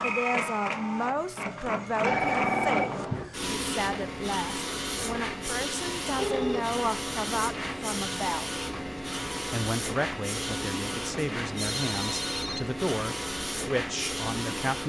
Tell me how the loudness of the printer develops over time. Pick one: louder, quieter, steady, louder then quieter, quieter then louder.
steady.